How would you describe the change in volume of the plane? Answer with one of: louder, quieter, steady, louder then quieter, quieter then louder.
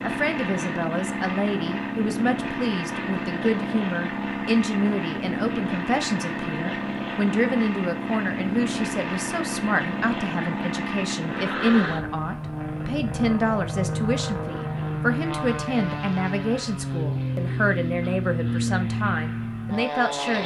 steady.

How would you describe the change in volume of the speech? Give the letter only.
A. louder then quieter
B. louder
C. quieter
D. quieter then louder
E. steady
E.